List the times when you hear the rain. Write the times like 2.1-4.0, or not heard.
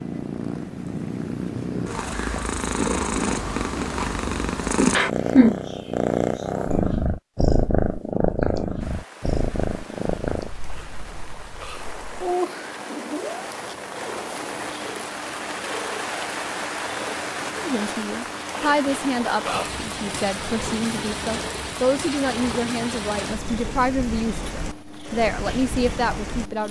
8.8-26.6.